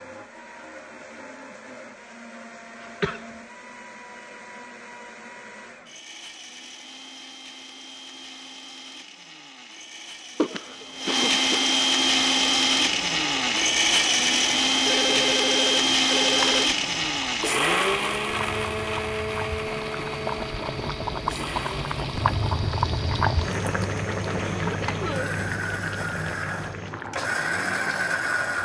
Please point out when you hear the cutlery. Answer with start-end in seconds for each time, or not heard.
not heard.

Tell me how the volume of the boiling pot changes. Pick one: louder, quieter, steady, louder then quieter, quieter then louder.
louder then quieter.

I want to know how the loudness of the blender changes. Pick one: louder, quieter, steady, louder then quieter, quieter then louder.
louder then quieter.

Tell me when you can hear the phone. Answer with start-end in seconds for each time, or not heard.
14.8-16.7.